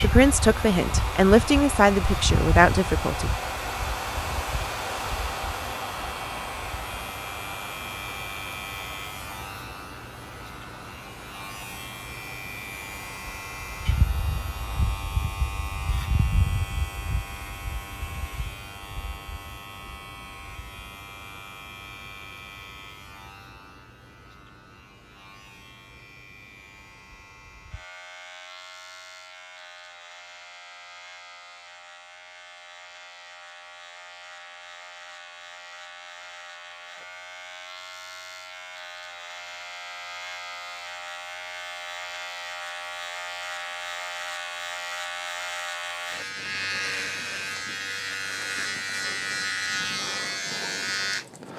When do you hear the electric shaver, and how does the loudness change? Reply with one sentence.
You can hear the electric shaver from 0.0 to 51.5 s, getting quieter then louder.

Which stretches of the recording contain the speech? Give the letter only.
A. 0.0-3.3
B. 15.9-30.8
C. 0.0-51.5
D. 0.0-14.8
A.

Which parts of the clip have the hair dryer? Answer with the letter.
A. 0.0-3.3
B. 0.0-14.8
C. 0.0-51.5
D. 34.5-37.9
B.